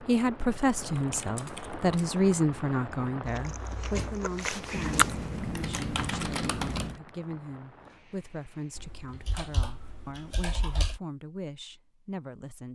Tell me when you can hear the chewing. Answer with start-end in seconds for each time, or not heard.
3.2-5.3.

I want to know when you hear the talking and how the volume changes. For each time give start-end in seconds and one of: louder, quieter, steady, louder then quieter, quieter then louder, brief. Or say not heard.
0.0-12.7 quieter.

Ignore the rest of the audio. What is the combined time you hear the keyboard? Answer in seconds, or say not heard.
6 s.